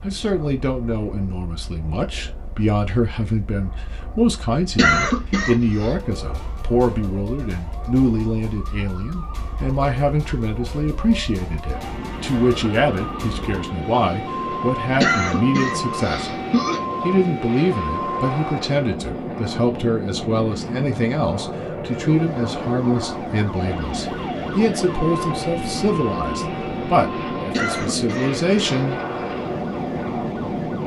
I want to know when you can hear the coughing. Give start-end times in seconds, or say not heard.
4.8-5.9, 15.0-16.8, 27.5-28.9.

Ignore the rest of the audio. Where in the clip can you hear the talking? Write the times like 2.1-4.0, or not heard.
0.0-16.3, 17.0-28.9.